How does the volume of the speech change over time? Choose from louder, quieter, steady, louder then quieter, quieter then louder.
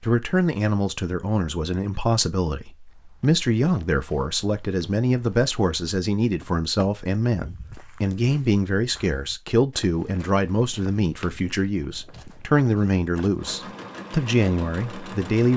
steady.